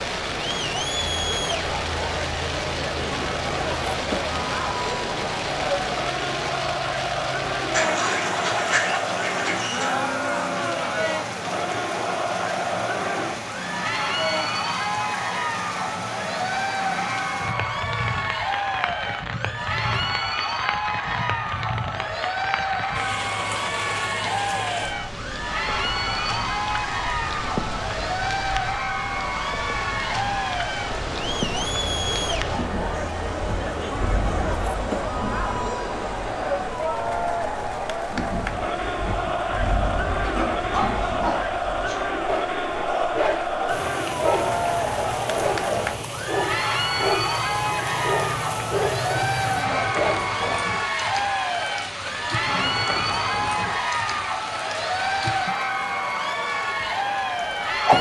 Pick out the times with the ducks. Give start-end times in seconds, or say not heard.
7.7-9.9.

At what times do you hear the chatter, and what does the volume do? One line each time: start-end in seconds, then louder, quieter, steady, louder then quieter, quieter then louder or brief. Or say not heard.
0.0-57.9 steady.